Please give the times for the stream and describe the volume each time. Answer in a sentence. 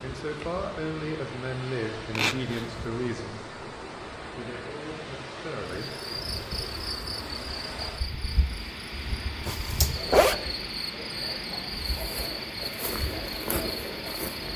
The stream can be heard from 0.0 to 14.5 s, at a steady volume.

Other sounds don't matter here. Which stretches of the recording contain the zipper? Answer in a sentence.
You can hear the zipper from 2.1 to 2.8 s and from 9.4 to 10.3 s.